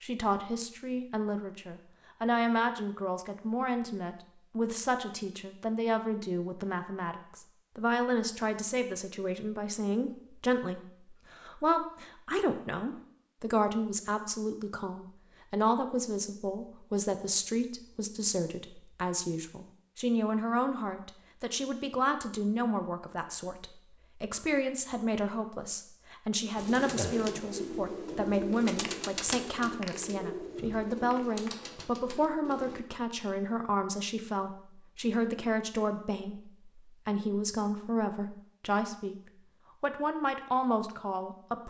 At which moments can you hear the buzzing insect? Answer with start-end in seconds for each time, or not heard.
not heard.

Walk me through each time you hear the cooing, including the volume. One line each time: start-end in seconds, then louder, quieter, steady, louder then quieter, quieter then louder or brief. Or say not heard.
26.6-32.8 quieter.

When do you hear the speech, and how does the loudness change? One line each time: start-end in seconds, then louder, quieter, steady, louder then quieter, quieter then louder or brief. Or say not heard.
0.0-41.6 steady.